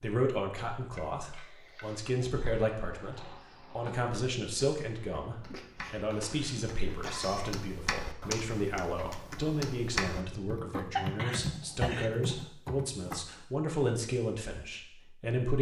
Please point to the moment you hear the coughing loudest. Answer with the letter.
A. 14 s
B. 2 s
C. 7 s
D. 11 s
D.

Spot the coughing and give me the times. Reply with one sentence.
You can hear the coughing from 0.9 to 2.1 s, from 5.5 to 7.5 s and from 10.9 to 12.3 s.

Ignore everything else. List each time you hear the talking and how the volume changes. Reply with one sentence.
You can hear the talking from 0.0 to 15.5 s, at a steady volume.